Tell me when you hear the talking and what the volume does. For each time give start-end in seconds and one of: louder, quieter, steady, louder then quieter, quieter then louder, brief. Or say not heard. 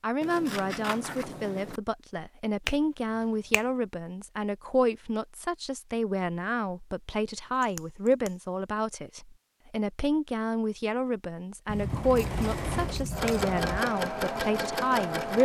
0.0-15.3 steady.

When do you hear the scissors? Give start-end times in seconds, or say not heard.
0.2-1.8, 7.6-8.3, 11.7-13.8.